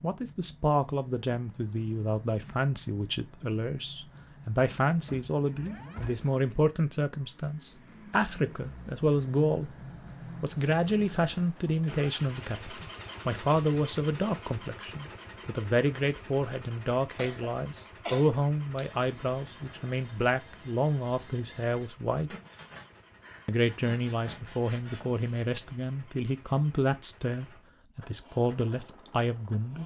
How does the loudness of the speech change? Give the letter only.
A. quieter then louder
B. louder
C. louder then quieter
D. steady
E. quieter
D.